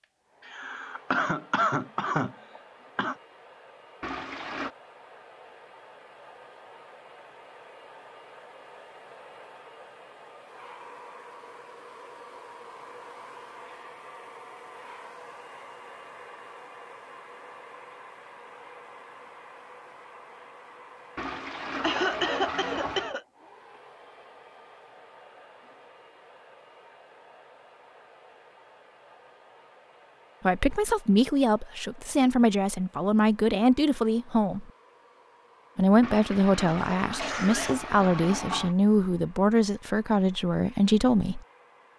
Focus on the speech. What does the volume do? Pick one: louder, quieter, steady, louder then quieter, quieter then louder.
steady.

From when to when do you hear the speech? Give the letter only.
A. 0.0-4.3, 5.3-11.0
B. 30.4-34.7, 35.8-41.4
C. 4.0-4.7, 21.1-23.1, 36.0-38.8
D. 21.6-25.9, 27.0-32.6
B.